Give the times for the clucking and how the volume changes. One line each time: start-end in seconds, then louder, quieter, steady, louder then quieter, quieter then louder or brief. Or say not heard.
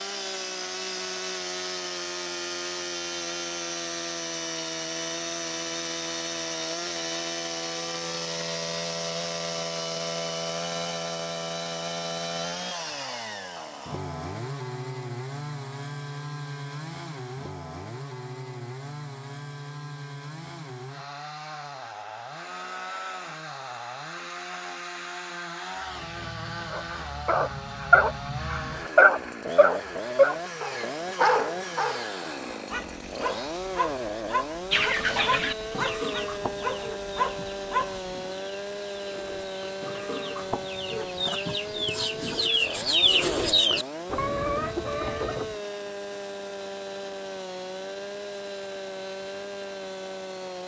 34.7-45.6 quieter then louder.